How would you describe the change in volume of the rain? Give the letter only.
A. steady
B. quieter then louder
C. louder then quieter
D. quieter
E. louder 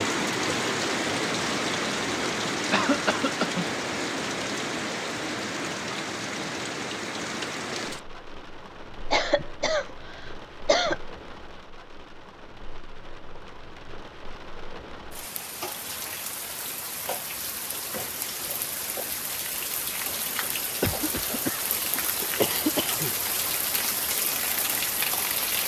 B.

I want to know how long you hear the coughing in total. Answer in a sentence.
You can hear the coughing for 5 seconds altogether.